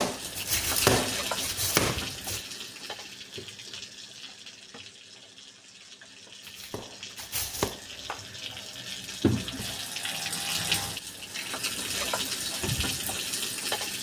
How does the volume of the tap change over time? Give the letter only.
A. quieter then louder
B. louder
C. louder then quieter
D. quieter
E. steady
A.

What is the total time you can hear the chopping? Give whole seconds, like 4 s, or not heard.
4 s.